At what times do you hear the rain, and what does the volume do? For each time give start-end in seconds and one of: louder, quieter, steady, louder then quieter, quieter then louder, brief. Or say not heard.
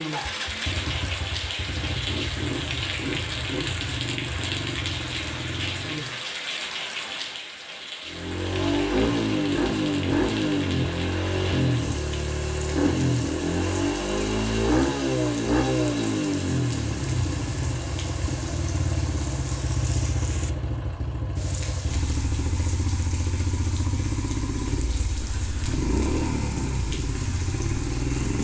0.0-28.4 quieter.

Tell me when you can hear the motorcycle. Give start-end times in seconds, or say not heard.
0.1-6.2, 8.1-28.4.